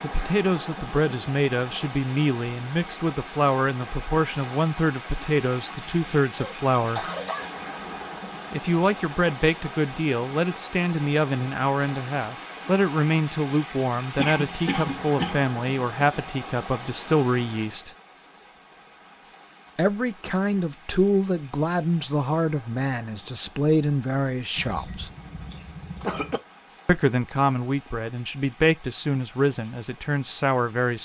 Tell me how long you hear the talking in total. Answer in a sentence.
The talking can be heard for 26 seconds in total.